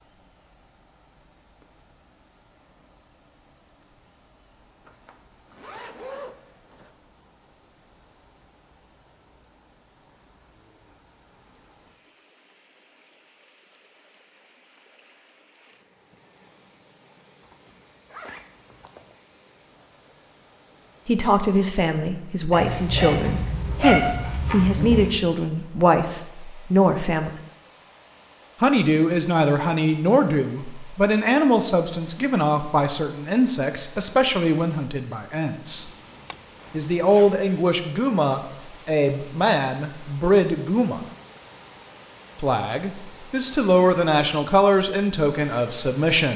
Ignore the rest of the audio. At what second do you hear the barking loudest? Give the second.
24 s.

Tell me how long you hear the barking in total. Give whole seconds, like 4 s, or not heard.
3 s.